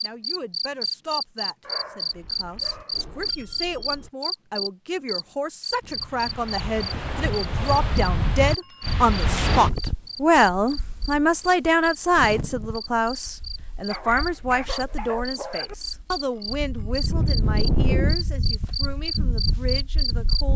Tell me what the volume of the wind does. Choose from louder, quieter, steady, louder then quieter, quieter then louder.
quieter then louder.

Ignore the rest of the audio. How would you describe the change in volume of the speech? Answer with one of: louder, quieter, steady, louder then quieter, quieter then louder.
louder then quieter.